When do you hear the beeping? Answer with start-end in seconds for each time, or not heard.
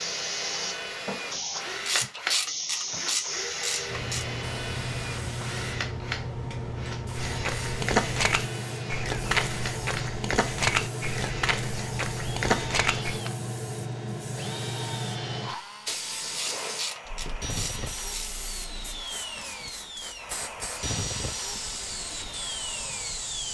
not heard.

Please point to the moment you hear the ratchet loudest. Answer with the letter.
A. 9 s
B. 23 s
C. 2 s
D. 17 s
C.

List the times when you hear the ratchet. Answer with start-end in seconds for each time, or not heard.
1.9-4.2, 16.3-18.3.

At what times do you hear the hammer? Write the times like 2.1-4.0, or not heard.
not heard.